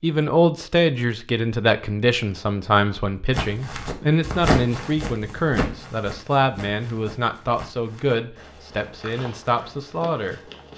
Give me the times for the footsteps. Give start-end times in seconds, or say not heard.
3.3-10.7.